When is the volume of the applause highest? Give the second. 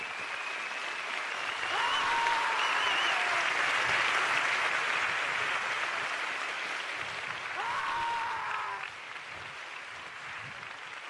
4 s.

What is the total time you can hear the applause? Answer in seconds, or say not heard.
11 s.